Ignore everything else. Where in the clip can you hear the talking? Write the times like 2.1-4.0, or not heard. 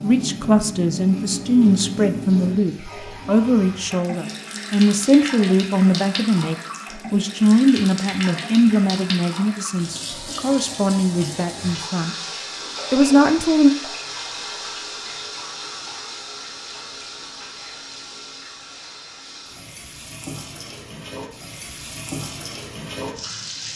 0.0-12.2, 12.9-13.7.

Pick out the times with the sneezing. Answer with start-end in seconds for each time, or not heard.
not heard.